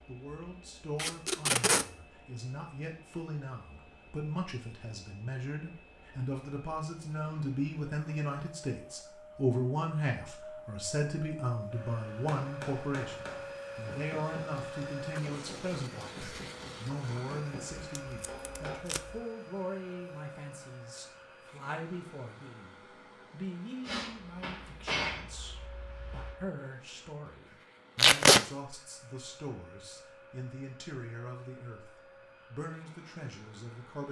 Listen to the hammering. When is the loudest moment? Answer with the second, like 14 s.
25 s.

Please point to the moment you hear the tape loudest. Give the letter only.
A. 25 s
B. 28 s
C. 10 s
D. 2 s
B.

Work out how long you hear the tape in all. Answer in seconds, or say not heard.
3 s.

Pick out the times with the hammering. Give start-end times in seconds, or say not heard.
12.2-18.9, 23.8-26.4.